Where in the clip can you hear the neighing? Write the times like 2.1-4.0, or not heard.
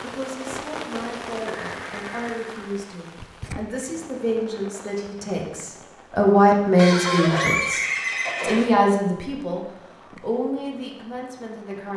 1.6-2.7, 6.8-8.7.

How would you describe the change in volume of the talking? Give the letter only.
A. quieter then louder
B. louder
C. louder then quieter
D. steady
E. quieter
C.